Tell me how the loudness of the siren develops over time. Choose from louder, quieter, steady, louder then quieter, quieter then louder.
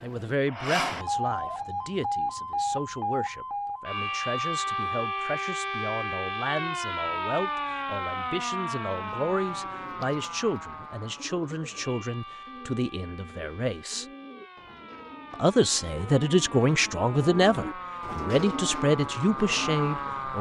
quieter then louder.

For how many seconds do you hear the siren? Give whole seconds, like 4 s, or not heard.
20 s.